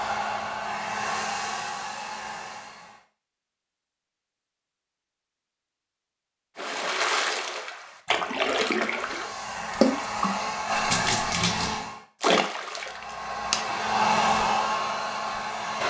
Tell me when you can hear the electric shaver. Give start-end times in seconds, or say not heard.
not heard.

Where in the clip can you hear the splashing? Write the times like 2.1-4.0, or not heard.
6.5-13.9.